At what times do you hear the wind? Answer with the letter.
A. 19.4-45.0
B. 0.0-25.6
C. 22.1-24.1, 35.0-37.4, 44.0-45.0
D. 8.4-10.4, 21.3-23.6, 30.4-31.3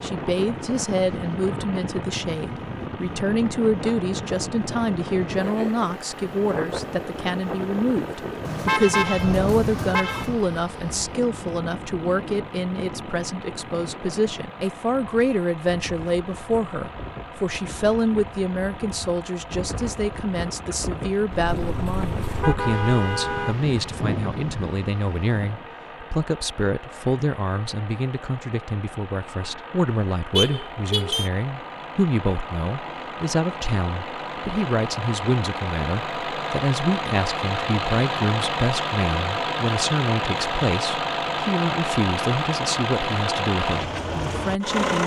B.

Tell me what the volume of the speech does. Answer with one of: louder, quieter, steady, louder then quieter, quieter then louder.
steady.